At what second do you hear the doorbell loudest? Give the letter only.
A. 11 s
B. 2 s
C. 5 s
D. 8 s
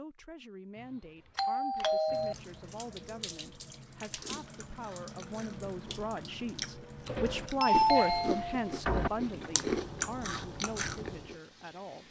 D.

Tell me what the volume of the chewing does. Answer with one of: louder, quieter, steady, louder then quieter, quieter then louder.
louder.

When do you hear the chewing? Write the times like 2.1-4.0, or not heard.
4.0-11.3.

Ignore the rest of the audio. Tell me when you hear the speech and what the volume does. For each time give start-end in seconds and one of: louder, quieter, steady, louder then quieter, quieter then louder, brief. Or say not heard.
0.0-12.0 louder then quieter.